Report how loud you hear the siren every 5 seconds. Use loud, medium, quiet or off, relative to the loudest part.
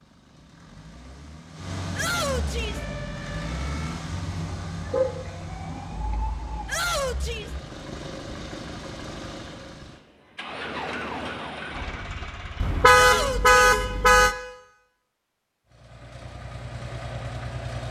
medium, medium, loud, off.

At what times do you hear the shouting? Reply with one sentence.
You can hear the shouting from 1.9 to 2.8 s, from 6.7 to 7.5 s and from 12.9 to 13.6 s.